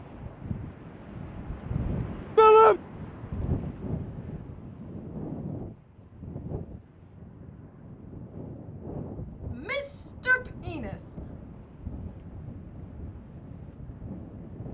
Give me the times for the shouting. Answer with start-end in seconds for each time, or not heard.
2.4-2.8, 9.5-11.2.